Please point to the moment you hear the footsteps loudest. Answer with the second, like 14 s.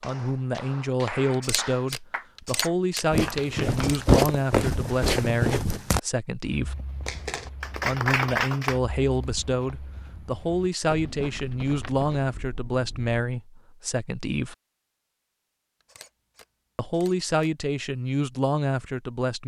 4 s.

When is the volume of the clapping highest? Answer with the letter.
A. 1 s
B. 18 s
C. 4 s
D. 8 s
D.